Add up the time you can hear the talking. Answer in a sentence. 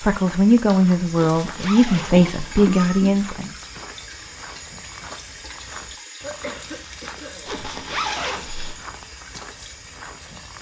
You can hear the talking for 4 seconds altogether.